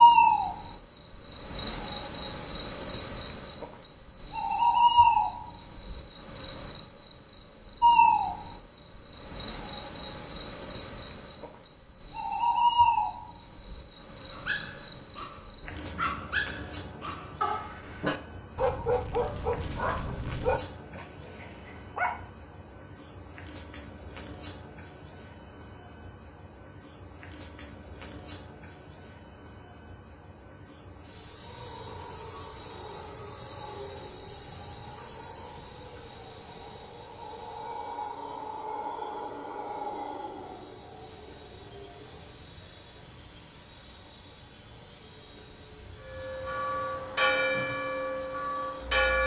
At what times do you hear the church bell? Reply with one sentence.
You can hear the church bell from 46.0 to 49.2 s.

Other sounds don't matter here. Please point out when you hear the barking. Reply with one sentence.
You can hear the barking from 14.3 to 22.2 s.